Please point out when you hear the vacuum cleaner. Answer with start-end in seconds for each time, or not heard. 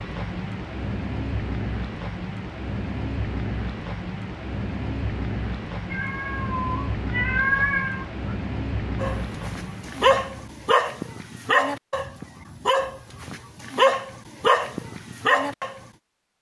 not heard.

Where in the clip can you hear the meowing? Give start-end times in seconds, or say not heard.
5.9-8.2.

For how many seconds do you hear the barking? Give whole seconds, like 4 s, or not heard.
7 s.